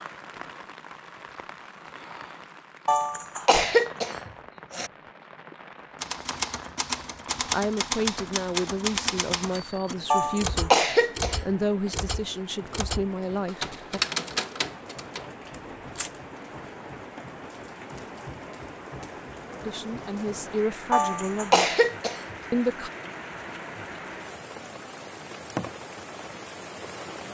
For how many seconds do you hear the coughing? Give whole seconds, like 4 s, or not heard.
5 s.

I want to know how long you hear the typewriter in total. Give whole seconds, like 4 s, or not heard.
10 s.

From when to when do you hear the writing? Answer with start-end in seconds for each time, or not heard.
not heard.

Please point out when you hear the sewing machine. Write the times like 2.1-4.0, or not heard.
not heard.